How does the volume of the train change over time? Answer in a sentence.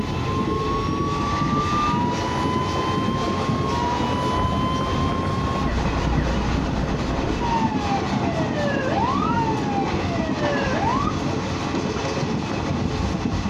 The volume of the train stays about the same.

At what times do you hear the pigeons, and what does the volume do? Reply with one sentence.
You can't hear the pigeons here.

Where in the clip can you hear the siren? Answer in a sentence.
The siren can be heard from 0.0 to 11.2 s.